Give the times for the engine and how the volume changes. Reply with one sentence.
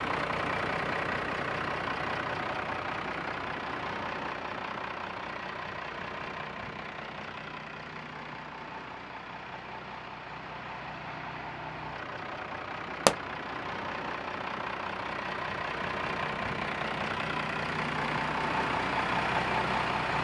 The engine can be heard from 0.0 to 20.2 s, getting quieter then louder.